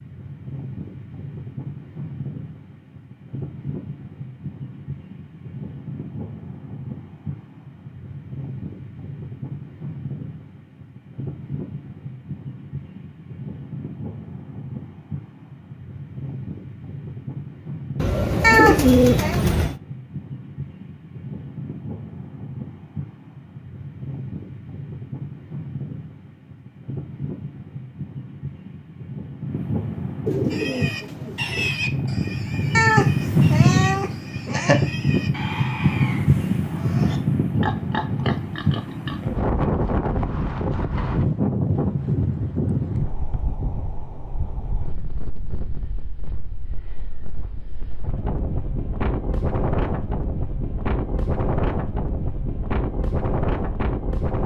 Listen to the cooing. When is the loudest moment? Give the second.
19 s.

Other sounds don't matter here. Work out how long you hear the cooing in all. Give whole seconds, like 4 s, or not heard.
3 s.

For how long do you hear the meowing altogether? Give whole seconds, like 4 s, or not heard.
3 s.